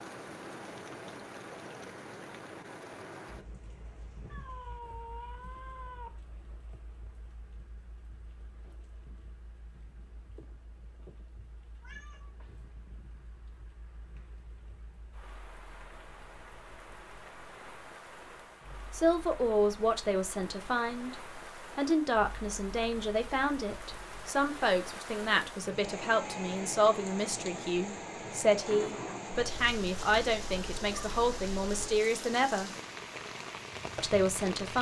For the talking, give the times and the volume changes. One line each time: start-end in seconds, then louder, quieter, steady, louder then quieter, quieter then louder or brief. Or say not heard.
18.9-32.7 steady
34.0-34.7 brief.